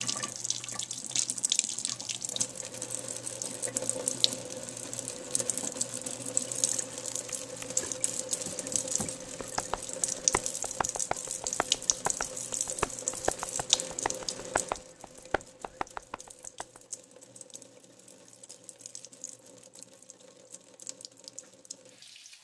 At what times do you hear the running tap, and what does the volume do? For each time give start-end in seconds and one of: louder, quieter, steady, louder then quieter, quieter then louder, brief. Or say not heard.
0.0-22.3 quieter.